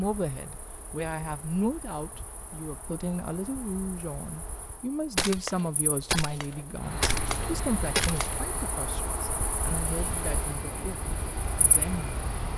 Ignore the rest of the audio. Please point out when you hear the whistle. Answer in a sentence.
You can't hear the whistle here.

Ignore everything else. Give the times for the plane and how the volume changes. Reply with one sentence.
The plane can be heard from 6.8 to 12.5 s, getting quieter then louder.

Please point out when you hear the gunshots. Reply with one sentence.
You can hear the gunshots from 5.2 to 8.5 s.